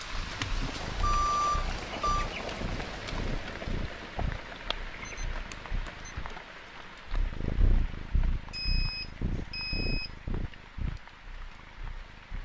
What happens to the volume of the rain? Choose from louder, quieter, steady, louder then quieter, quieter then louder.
quieter.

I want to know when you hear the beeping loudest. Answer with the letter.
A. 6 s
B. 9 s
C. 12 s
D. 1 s
D.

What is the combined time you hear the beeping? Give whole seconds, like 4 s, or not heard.
4 s.